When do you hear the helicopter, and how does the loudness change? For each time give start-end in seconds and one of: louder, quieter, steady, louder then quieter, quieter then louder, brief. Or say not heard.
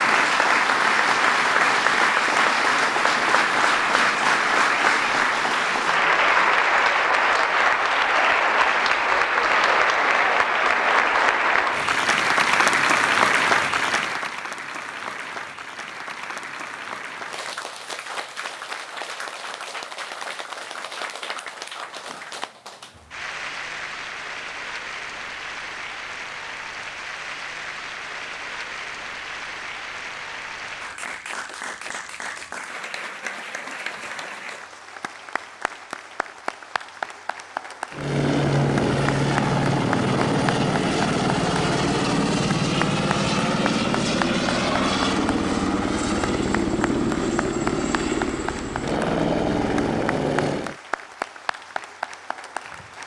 37.9-50.8 steady.